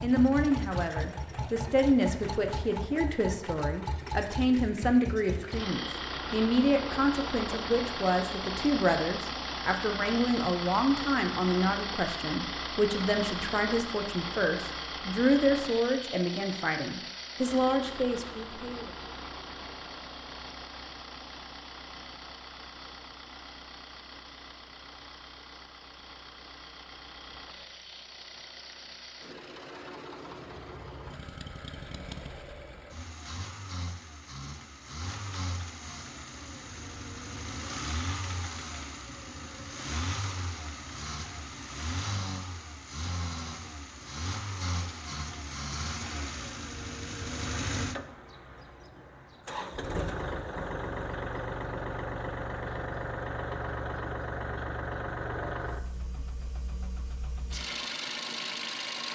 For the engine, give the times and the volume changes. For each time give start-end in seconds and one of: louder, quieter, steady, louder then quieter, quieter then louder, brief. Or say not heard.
0.0-59.1 quieter then louder.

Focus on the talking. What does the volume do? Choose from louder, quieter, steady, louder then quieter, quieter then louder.
steady.